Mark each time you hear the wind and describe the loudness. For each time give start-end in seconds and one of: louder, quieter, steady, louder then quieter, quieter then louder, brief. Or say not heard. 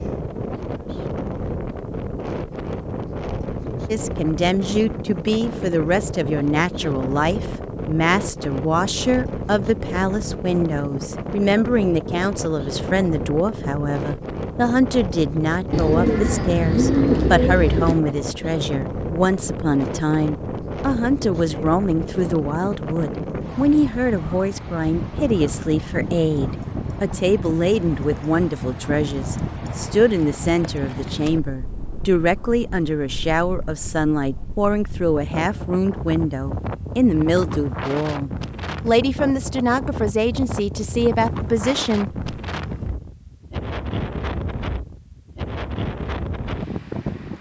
0.0-47.3 steady.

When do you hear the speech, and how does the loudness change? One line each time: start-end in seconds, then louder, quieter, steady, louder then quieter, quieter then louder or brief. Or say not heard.
3.9-42.1 steady.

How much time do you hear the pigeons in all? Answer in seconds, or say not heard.
2 s.